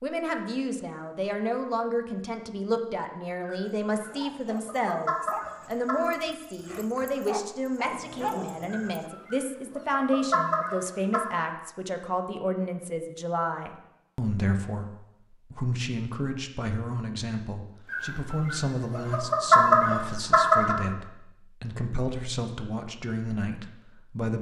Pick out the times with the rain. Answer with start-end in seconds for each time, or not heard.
not heard.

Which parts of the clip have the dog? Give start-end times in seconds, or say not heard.
3.6-9.1.